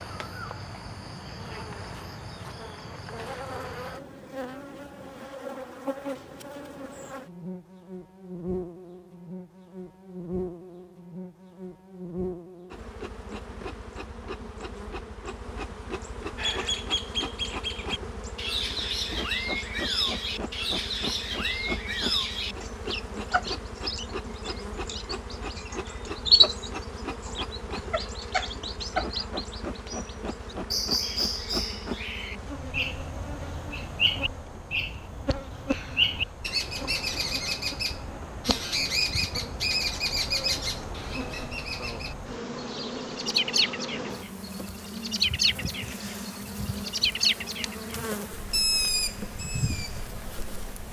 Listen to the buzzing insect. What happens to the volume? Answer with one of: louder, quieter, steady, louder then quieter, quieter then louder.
steady.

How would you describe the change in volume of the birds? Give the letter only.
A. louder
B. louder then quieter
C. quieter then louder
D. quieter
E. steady
E.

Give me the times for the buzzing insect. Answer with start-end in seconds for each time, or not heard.
0.0-50.8.